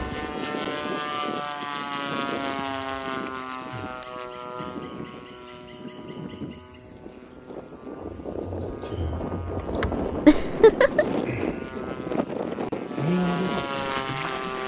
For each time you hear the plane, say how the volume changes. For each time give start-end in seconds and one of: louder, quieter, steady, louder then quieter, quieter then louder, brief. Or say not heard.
0.0-14.6 quieter then louder.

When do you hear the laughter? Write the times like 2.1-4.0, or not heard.
10.2-11.1.